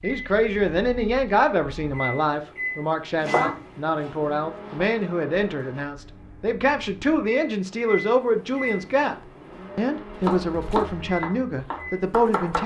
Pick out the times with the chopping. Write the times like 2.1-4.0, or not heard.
3.1-5.0, 10.2-12.6.